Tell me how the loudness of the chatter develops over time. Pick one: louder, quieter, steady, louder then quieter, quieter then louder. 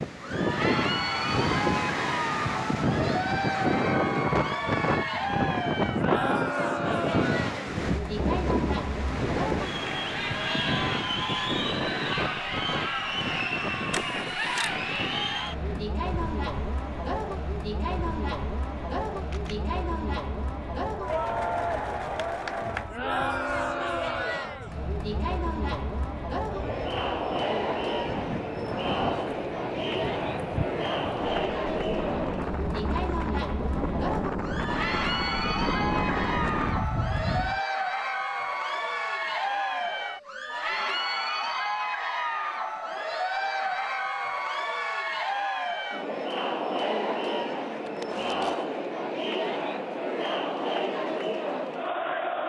steady.